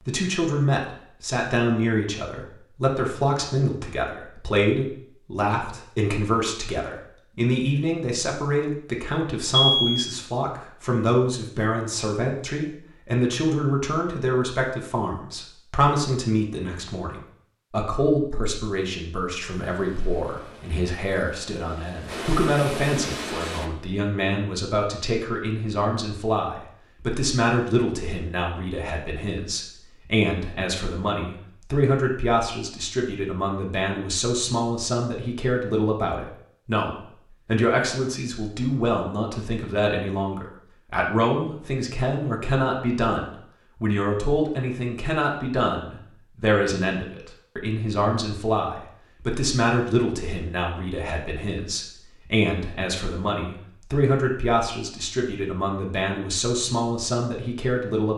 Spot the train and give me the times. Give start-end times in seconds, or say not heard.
19.5-23.7.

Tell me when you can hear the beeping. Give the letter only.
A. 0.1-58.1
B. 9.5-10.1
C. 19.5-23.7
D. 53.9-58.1
B.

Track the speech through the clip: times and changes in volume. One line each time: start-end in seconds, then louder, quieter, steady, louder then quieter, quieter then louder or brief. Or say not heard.
0.1-58.1 steady.